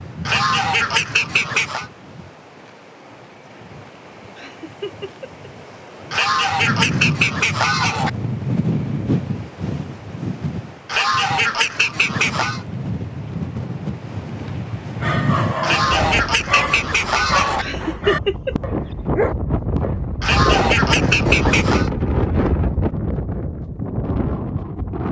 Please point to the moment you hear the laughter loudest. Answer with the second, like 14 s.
18 s.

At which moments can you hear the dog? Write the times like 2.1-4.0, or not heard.
15.0-20.0.